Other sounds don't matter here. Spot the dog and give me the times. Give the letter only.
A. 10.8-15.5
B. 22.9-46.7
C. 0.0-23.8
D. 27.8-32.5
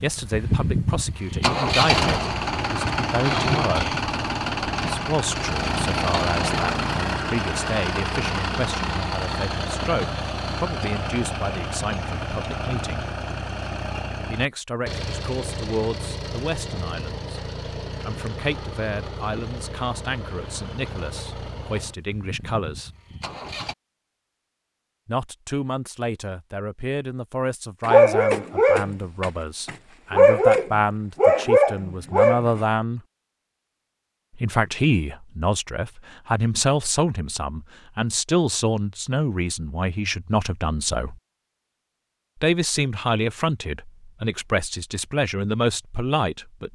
D.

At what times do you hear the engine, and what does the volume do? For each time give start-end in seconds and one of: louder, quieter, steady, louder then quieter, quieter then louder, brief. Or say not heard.
0.0-23.8 quieter.